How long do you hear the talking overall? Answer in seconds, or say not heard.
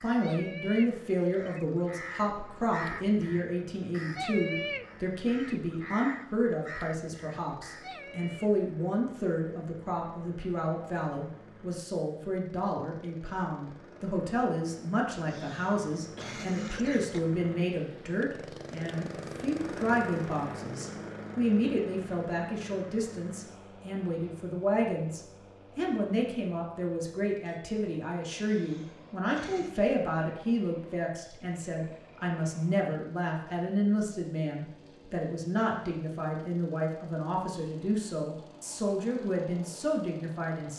41 s.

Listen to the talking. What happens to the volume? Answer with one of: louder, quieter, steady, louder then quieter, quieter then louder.
steady.